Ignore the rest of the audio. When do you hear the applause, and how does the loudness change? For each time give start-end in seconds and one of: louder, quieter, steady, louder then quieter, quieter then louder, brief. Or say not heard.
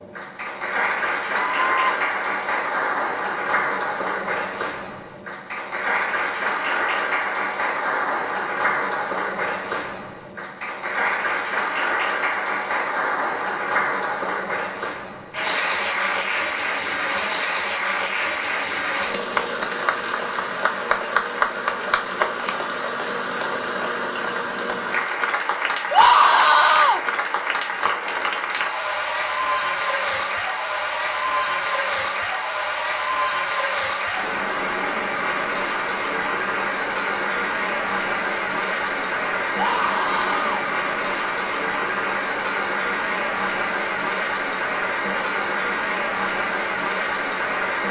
0.0-47.8 steady.